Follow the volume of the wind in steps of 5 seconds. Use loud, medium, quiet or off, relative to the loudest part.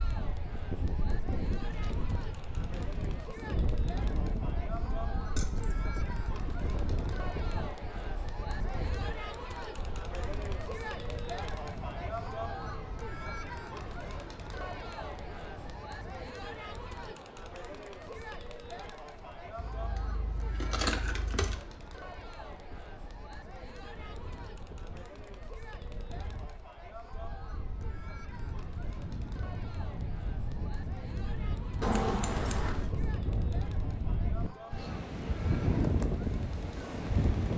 medium, medium, quiet, quiet, quiet, quiet, medium, loud.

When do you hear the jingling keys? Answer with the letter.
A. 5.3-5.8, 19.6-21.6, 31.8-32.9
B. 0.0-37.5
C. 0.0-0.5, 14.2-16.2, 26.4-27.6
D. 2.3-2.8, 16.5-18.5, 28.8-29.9
A.